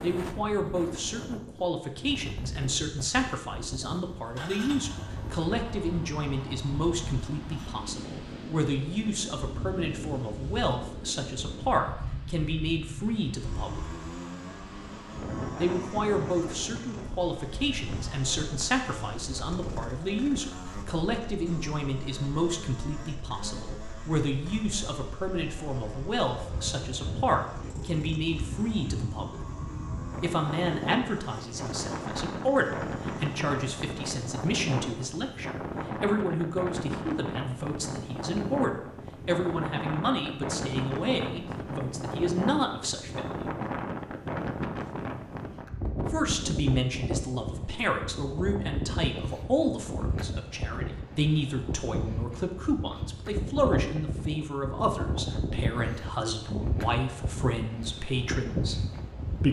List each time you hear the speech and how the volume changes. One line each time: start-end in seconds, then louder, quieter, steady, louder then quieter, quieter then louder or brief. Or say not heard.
0.0-13.8 steady
15.6-29.4 steady
30.2-43.5 steady
46.0-58.8 steady.